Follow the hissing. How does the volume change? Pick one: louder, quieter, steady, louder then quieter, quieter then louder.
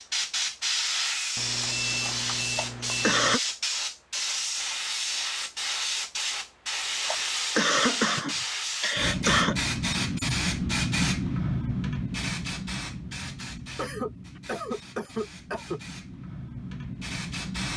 quieter.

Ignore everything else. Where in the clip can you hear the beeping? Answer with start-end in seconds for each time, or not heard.
1.4-3.4.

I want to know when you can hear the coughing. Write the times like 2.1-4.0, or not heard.
2.5-3.4, 7.0-9.6, 13.8-15.8.